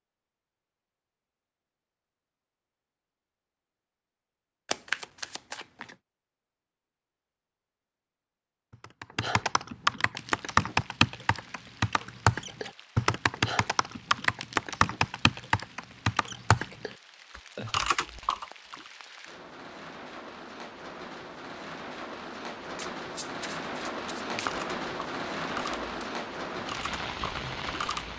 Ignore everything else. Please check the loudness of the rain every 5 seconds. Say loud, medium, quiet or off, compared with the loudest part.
off, off, quiet, quiet, loud, loud.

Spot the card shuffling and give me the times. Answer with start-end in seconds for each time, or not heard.
4.7-6.0, 22.8-24.6.